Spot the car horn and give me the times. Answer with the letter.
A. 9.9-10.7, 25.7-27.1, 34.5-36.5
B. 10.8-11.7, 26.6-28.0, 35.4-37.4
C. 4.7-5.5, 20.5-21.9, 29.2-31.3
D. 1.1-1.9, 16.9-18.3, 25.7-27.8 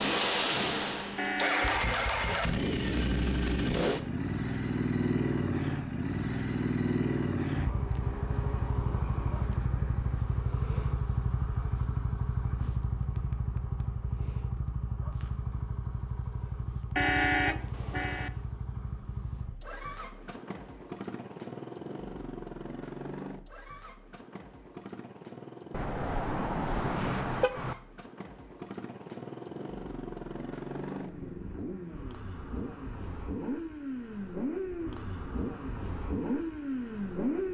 D.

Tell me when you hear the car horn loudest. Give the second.
17 s.